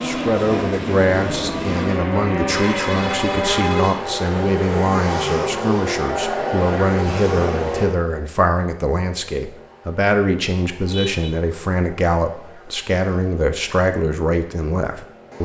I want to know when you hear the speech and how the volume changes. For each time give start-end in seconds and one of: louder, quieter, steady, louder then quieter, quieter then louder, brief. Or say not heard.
0.0-15.3 steady.